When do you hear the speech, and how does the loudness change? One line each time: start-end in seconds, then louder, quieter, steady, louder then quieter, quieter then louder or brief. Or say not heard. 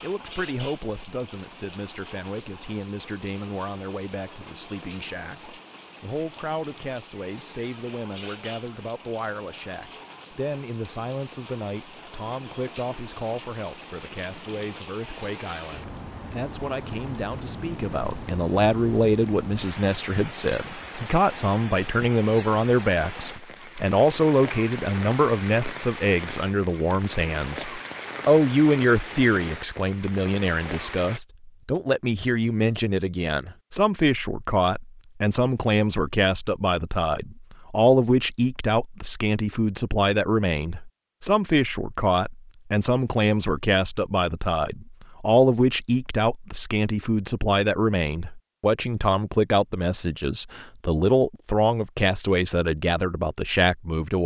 0.0-54.2 louder.